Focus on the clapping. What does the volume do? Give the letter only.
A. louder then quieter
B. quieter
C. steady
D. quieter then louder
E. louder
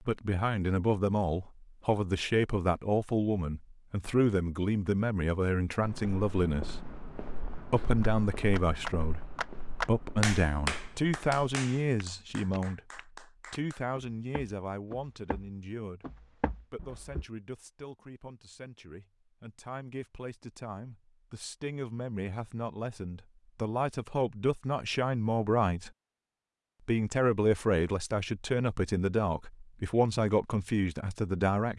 A.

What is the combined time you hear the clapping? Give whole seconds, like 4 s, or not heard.
6 s.